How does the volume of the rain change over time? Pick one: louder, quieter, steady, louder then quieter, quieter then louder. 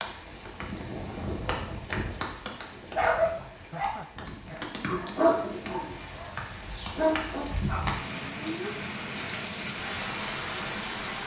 quieter then louder.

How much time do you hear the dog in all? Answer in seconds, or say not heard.
5 s.